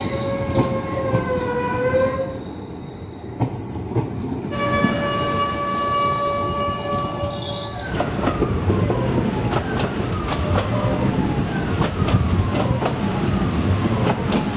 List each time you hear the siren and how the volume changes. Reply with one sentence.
You can hear the siren briefly from 0.0 to 2.2 s; and from 4.5 to 14.5 s, getting quieter.